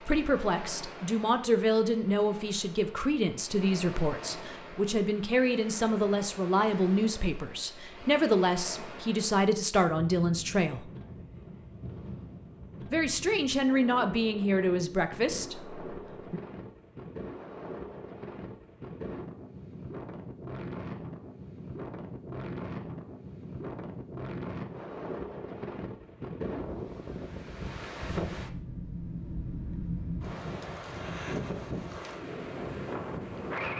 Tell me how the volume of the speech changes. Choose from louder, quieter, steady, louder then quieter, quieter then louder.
steady.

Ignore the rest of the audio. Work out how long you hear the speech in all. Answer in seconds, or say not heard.
14 s.